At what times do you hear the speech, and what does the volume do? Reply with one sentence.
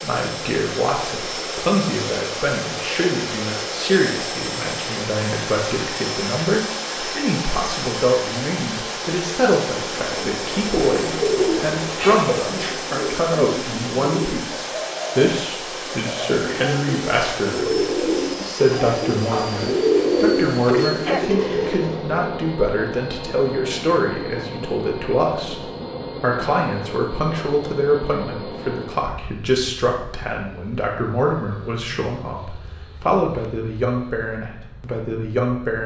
You can hear the speech from 0.0 to 35.8 s, at a steady volume.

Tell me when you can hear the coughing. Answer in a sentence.
The coughing can't be heard in this clip.